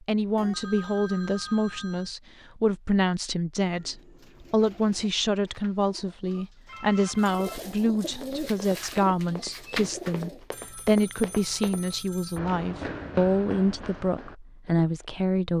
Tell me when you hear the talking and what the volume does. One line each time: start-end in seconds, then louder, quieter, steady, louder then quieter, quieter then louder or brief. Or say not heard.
0.1-15.5 steady.